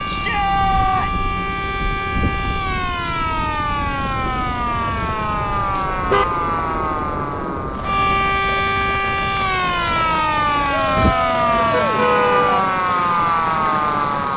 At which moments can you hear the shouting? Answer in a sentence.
You can hear the shouting from 0.1 to 1.3 s and from 10.7 to 12.7 s.